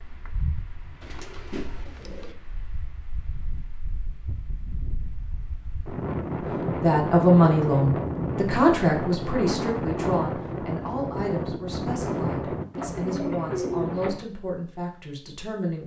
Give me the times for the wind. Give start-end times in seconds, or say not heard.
0.0-12.7.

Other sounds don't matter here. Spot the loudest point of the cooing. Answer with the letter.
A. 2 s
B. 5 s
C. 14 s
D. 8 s
C.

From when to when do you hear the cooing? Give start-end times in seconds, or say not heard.
1.0-2.4, 12.7-14.2.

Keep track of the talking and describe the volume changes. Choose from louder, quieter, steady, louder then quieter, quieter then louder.
quieter.